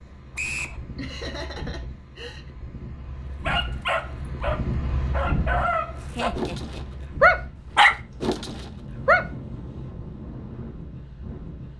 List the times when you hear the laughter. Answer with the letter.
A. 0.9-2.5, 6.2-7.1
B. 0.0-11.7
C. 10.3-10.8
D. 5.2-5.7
A.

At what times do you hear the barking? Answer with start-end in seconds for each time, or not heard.
3.5-9.2.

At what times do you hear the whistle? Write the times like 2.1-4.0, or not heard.
0.3-0.8.